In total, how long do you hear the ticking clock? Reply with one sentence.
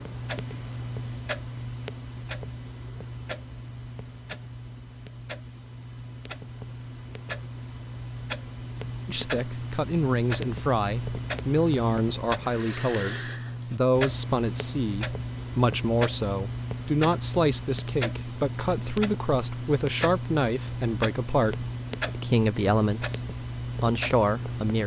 The ticking clock can be heard for 25 seconds in total.